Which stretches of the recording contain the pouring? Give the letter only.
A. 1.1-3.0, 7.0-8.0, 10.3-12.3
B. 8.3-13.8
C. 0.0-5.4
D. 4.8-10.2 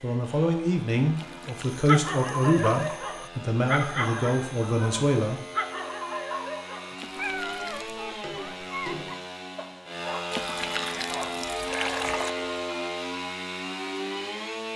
A.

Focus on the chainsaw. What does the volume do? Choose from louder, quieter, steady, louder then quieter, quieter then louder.
louder.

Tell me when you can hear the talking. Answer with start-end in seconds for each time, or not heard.
0.0-5.4.